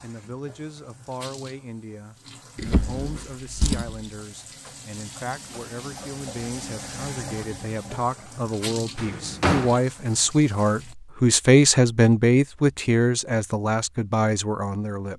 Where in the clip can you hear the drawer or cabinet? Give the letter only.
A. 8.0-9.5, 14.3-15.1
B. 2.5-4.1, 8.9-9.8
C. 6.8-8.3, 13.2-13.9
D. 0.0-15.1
B.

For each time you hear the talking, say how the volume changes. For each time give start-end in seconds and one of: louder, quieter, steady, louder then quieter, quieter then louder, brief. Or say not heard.
0.0-15.1 louder.